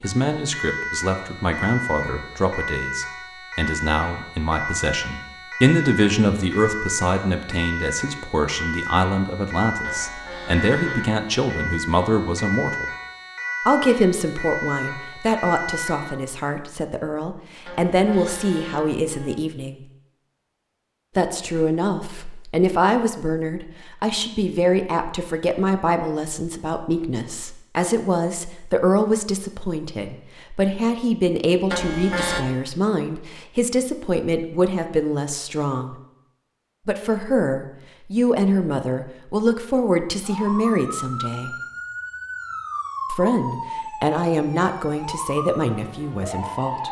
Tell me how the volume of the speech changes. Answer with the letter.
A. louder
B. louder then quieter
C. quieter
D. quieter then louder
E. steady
E.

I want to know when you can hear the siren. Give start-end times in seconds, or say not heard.
0.0-16.1, 40.2-46.8.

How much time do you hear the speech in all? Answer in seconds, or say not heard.
42 s.